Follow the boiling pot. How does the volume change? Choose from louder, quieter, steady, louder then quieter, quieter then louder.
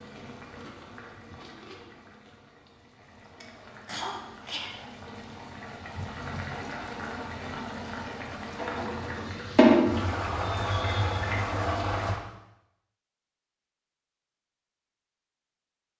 louder.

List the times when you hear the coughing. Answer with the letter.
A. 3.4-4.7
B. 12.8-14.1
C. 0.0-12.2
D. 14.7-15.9
A.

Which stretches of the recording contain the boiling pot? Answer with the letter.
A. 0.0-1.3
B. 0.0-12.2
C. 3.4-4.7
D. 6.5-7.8
B.